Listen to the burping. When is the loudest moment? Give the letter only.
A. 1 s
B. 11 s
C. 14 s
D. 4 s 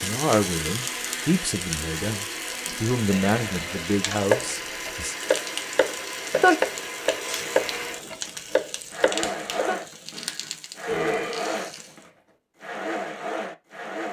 B.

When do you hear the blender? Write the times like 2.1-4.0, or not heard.
0.0-14.0.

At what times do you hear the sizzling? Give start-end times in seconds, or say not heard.
0.0-12.1.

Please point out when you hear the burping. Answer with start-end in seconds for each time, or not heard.
3.1-3.9, 10.8-11.7.